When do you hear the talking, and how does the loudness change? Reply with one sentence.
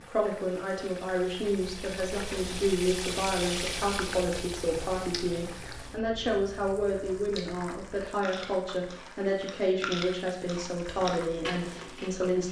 You can hear the talking from 0.0 to 12.4 s, at a steady volume.